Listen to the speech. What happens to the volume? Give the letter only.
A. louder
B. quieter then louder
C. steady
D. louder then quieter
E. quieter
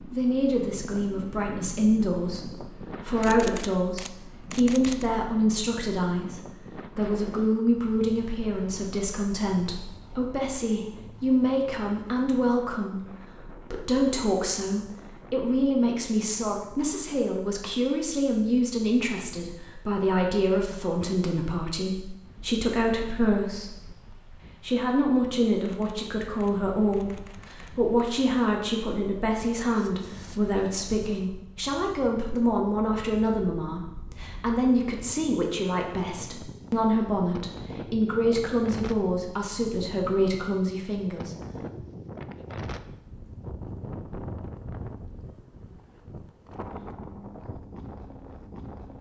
C.